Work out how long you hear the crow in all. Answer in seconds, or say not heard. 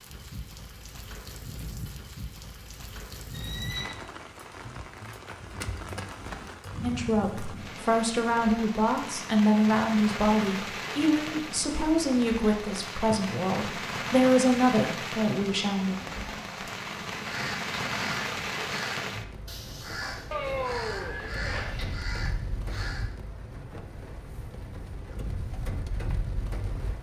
6 s.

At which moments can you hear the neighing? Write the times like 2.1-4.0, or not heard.
3.3-4.0, 20.3-21.8.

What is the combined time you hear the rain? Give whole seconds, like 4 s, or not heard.
27 s.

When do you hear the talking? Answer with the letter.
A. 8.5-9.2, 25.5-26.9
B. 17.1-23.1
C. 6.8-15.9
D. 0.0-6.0
C.